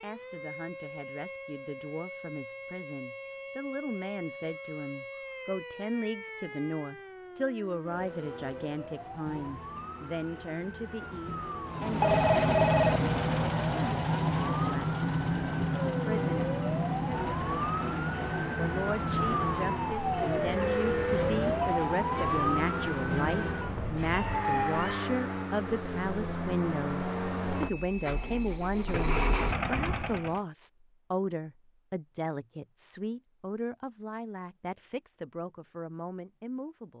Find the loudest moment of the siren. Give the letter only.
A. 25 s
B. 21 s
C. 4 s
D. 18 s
B.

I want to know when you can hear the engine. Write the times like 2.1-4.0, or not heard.
11.7-30.4.